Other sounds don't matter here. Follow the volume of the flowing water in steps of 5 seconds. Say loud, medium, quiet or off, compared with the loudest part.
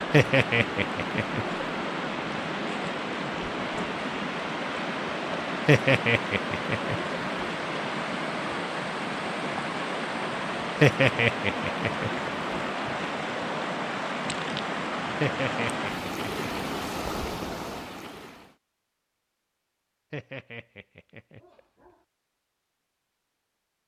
loud, loud, loud, loud, off.